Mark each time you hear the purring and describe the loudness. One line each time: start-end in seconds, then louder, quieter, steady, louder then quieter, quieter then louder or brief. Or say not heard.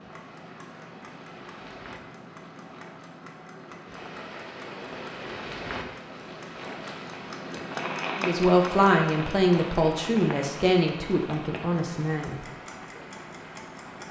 not heard.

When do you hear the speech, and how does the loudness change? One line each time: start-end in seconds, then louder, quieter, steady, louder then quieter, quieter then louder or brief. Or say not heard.
8.2-12.3 quieter.